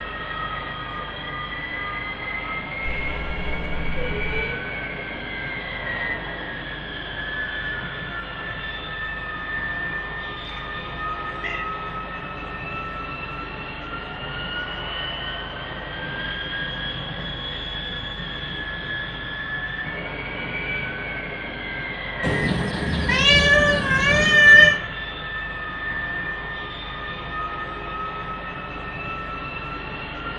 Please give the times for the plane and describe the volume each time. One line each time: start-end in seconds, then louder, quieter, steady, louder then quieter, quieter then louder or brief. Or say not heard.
0.0-30.3 steady.